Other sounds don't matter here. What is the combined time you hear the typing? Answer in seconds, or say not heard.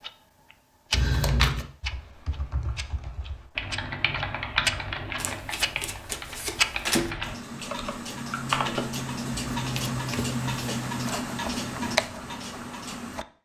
7 s.